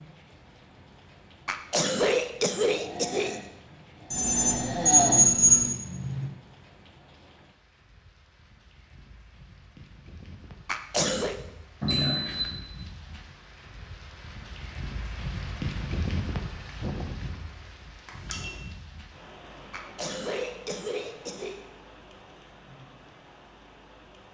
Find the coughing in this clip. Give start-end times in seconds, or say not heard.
1.4-3.4, 10.7-11.3, 19.7-21.6.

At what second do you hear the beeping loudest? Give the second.
5 s.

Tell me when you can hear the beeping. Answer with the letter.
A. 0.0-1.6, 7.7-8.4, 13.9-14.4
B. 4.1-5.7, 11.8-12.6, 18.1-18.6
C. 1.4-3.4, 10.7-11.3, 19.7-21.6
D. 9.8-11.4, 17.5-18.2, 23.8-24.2
B.